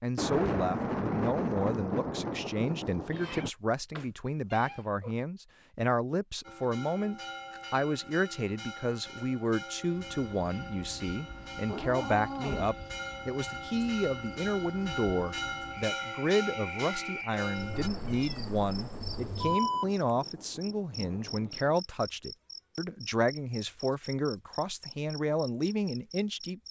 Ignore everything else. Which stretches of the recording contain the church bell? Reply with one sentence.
You can hear the church bell from 6.4 to 17.9 s.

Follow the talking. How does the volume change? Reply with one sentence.
The volume of the talking stays about the same.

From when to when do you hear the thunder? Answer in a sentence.
The thunder can be heard from 0.1 to 3.5 s and from 17.7 to 21.8 s.